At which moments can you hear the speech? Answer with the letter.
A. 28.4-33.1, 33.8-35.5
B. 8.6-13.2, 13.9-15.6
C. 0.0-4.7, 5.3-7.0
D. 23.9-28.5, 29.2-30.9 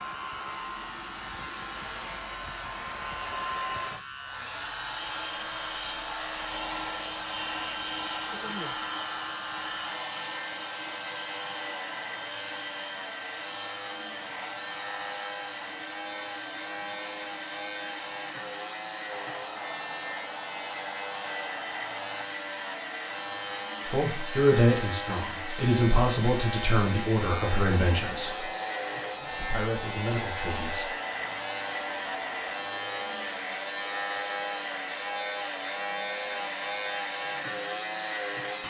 D.